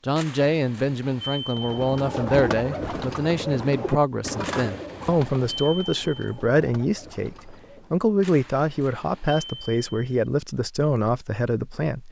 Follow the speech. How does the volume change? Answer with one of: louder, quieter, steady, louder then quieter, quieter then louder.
steady.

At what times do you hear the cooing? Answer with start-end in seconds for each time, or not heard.
1.6-8.1.